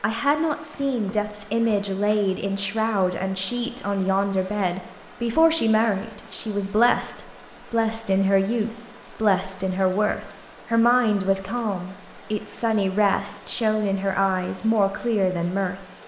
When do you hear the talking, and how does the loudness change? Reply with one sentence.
You can hear the talking from 0.0 to 15.8 s, at a steady volume.